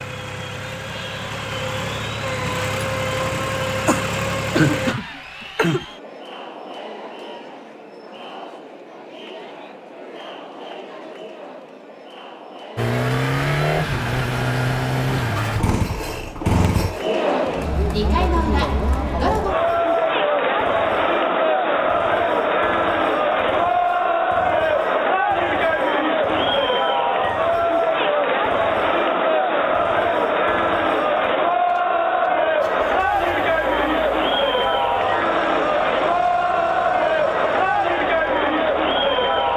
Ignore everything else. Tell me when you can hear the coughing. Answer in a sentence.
You can hear the coughing from 3.9 to 5.8 s.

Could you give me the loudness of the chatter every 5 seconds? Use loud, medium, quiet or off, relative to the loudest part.
quiet, quiet, quiet, loud, loud, loud, loud, loud.